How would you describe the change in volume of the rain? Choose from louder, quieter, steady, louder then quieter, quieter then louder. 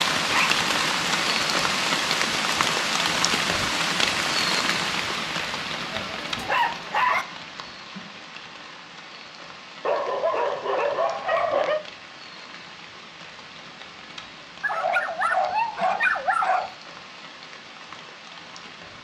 quieter.